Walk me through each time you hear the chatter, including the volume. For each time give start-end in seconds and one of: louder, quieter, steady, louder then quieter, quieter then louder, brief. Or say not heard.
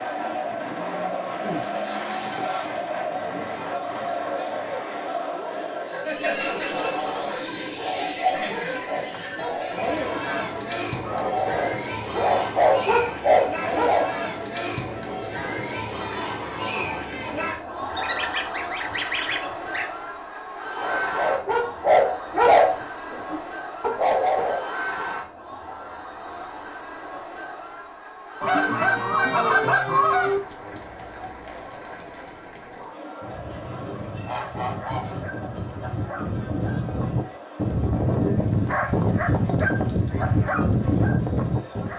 0.0-41.9 quieter.